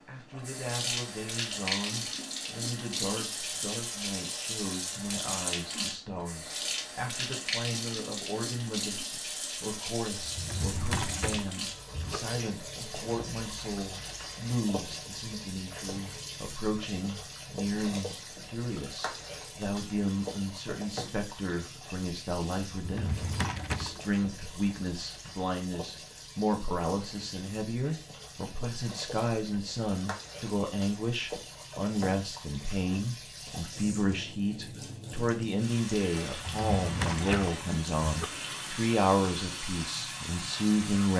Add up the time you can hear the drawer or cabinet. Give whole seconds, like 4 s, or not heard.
5 s.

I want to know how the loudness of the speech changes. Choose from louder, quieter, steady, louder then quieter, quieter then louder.
louder.